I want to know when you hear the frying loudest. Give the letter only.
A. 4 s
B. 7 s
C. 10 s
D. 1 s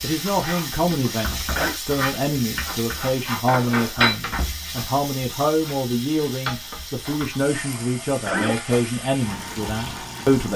A.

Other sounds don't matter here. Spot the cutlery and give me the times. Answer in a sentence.
You can't hear the cutlery here.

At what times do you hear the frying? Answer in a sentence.
The frying can be heard from 0.0 to 10.5 s.